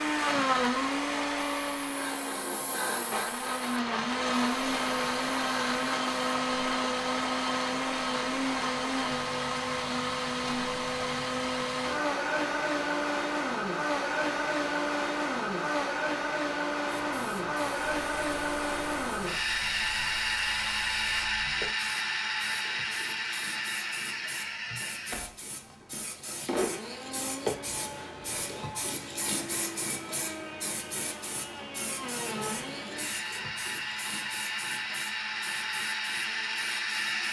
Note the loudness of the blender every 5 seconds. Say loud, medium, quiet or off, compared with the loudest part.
loud, loud, loud, loud, loud, medium, medium, loud.